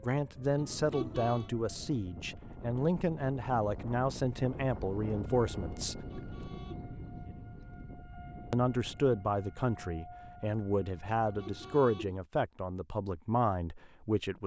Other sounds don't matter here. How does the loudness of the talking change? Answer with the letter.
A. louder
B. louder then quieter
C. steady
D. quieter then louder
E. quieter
C.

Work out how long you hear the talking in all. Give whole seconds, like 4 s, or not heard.
12 s.